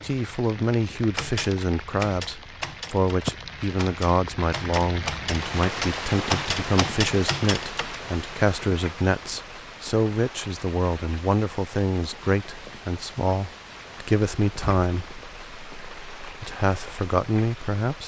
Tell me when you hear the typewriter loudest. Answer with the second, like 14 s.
6 s.